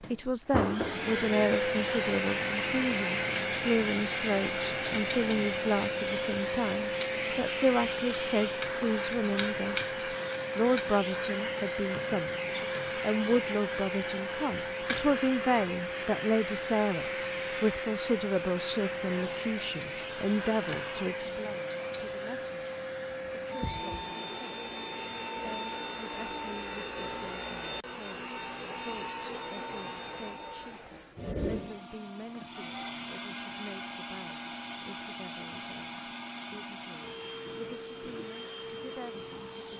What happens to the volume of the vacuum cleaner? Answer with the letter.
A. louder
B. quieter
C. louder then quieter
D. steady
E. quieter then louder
B.